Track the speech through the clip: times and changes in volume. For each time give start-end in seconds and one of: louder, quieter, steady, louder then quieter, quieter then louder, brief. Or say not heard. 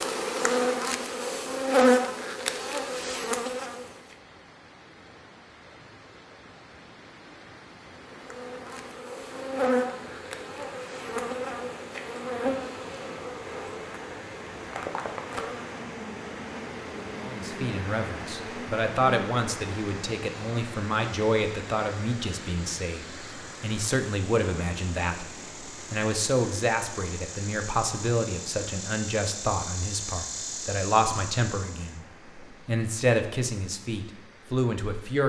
17.2-35.2 steady.